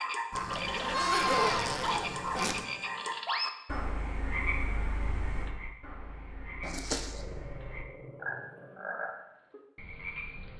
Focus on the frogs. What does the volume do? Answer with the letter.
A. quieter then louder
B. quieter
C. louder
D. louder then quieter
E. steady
A.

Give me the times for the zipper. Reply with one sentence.
The zipper can be heard from 0.3 to 2.6 s and from 6.6 to 7.2 s.